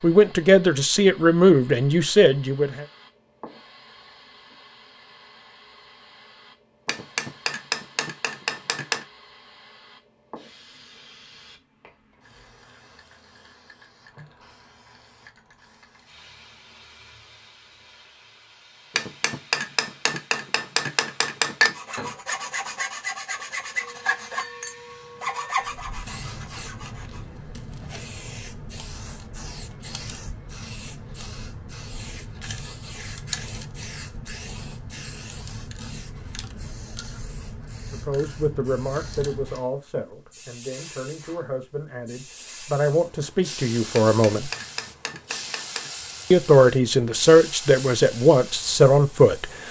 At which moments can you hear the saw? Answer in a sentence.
You can hear the saw from 21.7 to 27.2 s.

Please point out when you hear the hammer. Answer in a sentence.
You can hear the hammer from 6.8 to 9.1 s, from 18.9 to 21.8 s and from 43.9 to 45.9 s.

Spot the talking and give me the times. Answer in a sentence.
You can hear the talking from 0.0 to 2.9 s, from 37.9 to 44.5 s and from 46.3 to 49.6 s.